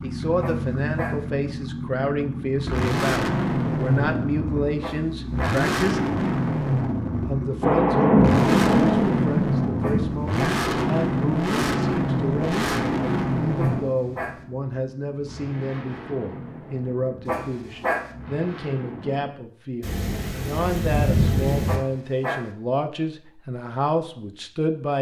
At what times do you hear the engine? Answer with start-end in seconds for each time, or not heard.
0.0-19.3.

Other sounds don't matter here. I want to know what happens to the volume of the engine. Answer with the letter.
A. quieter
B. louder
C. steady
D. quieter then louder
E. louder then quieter
A.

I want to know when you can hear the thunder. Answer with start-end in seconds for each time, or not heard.
7.6-10.2, 19.8-21.8.